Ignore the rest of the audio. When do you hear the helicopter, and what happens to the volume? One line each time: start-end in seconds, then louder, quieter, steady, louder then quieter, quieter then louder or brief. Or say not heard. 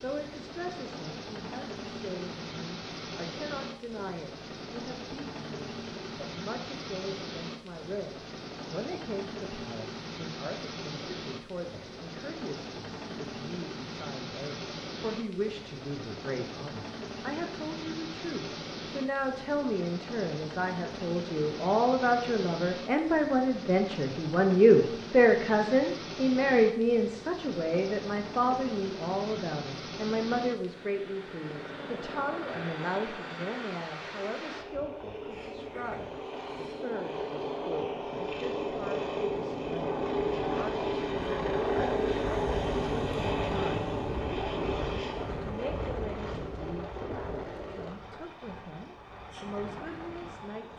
0.0-50.7 louder.